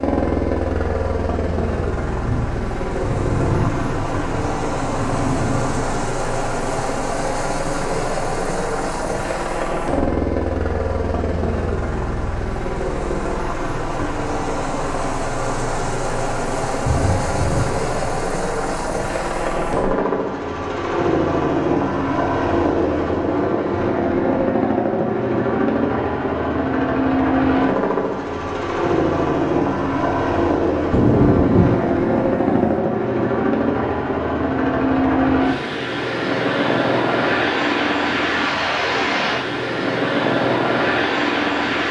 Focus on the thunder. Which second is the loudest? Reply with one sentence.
The loudest moment of the thunder is at 31 seconds.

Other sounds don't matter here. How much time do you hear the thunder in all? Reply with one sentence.
The thunder can be heard for 7 seconds in total.